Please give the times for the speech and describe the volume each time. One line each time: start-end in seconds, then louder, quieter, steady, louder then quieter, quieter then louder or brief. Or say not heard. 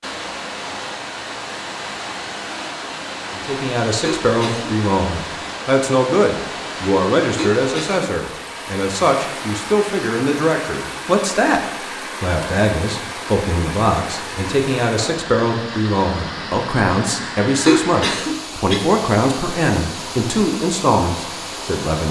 3.4-22.0 steady.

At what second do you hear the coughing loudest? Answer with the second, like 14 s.
18 s.